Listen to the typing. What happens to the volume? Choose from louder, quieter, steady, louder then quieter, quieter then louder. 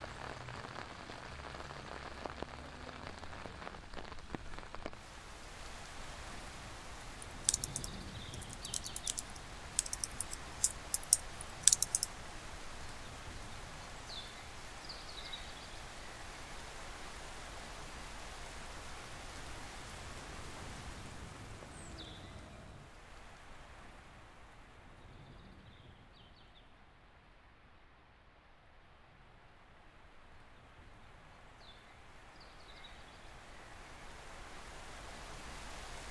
louder.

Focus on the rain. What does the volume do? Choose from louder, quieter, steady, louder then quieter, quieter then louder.
quieter.